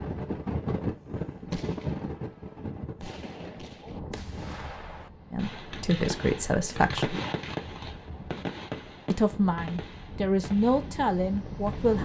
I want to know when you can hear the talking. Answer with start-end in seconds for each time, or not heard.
5.3-7.2, 9.1-12.0.